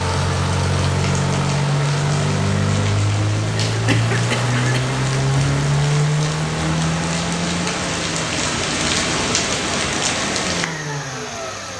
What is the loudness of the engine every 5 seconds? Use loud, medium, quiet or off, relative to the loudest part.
loud, loud, medium.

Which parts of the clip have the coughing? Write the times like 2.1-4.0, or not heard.
3.5-5.0.